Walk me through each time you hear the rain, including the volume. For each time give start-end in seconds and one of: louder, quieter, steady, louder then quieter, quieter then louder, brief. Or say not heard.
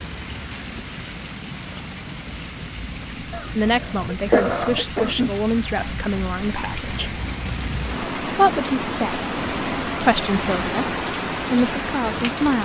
0.0-12.5 louder.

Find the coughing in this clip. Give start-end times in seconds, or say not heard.
3.3-5.3.